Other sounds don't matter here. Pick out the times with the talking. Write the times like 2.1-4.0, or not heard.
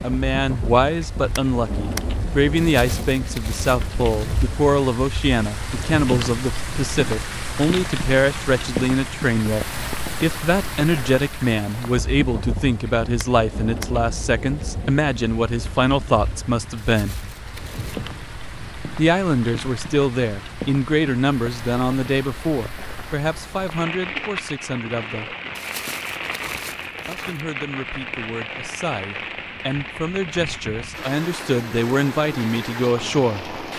0.0-17.1, 18.9-25.4, 27.1-33.5.